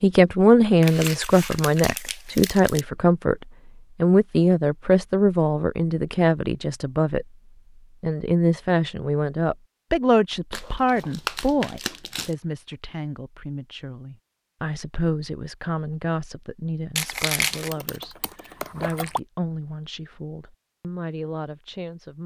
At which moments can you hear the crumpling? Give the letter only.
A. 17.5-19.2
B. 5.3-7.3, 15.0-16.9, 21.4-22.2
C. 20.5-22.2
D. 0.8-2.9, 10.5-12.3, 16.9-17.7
D.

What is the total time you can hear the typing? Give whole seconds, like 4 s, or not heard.
2 s.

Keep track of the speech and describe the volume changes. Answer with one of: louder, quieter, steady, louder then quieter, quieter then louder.
quieter.